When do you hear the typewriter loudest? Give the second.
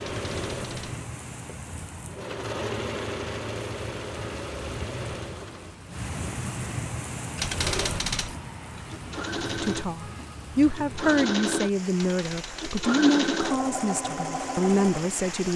8 s.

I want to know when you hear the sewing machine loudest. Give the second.
13 s.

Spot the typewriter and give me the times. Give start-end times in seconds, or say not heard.
0.1-1.0, 7.3-8.3, 11.9-12.9.